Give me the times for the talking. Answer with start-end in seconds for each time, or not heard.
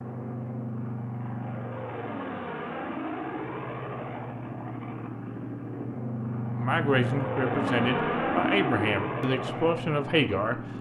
6.5-10.6.